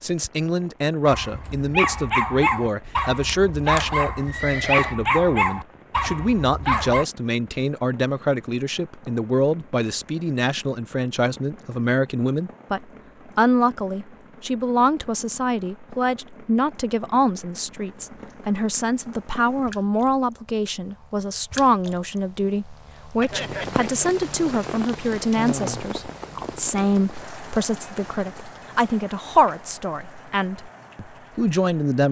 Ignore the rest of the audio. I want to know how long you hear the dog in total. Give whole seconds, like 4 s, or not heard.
6 s.